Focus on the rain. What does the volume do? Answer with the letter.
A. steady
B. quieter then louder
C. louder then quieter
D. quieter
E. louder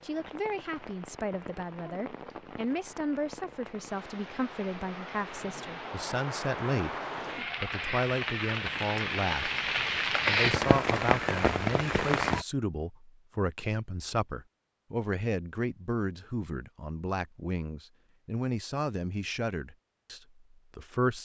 E.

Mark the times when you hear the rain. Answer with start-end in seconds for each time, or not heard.
0.0-12.4.